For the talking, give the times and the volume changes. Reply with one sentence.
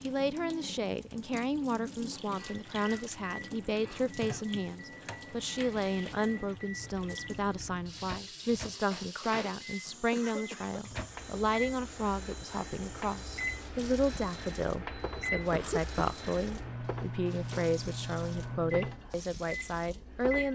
The talking can be heard from 0.0 to 20.5 s, at a steady volume.